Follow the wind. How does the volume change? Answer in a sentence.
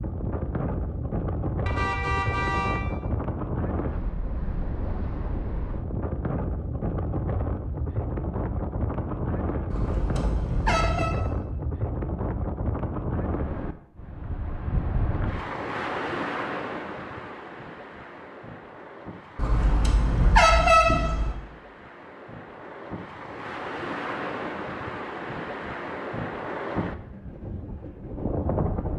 The loudness of the wind goes down, then up.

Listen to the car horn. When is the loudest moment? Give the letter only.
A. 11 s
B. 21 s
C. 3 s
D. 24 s
B.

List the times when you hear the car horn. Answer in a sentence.
You can hear the car horn from 1.6 to 2.8 s, from 9.7 to 11.2 s and from 19.4 to 21.4 s.